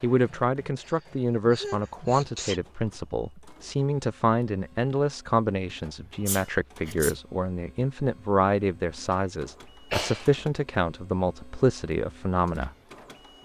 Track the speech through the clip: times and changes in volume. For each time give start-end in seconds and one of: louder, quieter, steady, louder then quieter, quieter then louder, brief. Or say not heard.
0.0-12.7 steady.